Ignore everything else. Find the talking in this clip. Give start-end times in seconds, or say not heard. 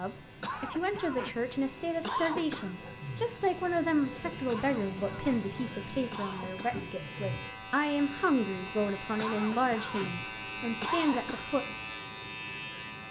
0.0-11.7.